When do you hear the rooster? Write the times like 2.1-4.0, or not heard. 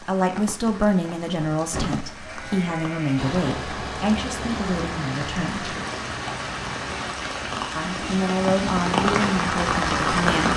not heard.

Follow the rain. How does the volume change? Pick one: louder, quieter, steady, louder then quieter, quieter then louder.
louder.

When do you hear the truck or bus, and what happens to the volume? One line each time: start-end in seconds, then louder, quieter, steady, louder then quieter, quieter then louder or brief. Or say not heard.
3.1-7.2 steady.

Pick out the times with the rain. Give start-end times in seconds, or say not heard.
0.0-10.5.